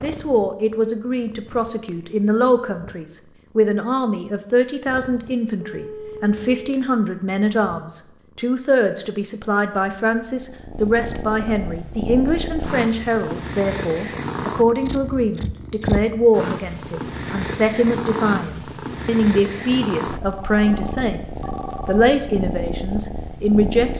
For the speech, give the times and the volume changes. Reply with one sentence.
You can hear the speech from 0.0 to 23.9 s, at a steady volume.